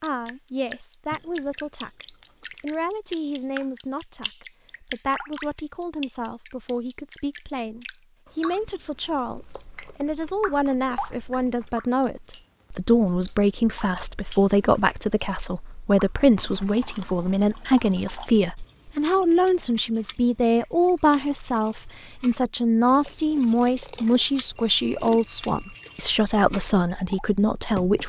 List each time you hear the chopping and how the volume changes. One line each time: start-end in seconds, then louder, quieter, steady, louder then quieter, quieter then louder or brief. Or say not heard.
not heard.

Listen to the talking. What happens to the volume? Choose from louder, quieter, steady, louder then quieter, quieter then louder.
louder.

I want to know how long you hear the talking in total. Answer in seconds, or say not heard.
28 s.